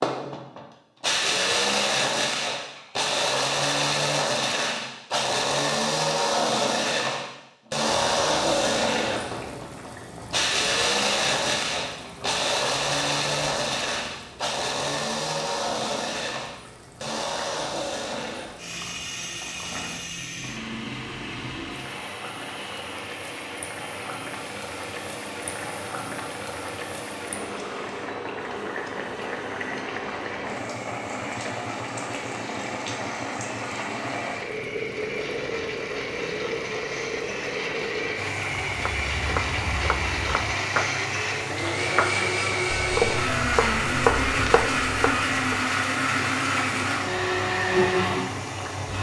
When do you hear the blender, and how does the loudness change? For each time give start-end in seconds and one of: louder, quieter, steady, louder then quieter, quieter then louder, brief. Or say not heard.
0.0-48.9 quieter then louder.